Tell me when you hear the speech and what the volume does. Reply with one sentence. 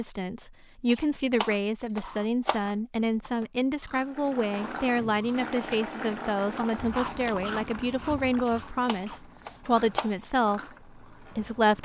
You can hear the speech from 0.0 to 11.8 s, at a steady volume.